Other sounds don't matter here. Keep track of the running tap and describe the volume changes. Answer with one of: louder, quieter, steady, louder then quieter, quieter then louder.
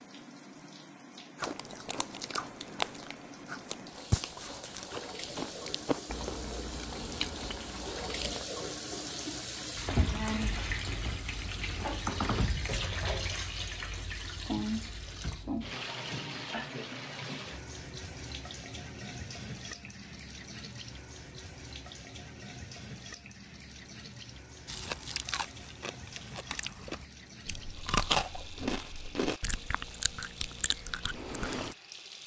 louder then quieter.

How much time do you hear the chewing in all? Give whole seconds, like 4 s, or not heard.
14 s.